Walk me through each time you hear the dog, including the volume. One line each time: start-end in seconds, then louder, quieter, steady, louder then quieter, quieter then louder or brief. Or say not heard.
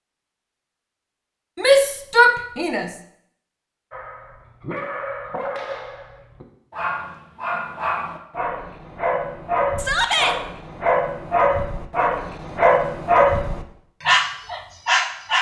3.9-15.3 louder.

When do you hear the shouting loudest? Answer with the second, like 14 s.
2 s.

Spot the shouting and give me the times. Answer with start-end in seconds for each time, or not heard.
1.6-2.9, 9.8-10.3.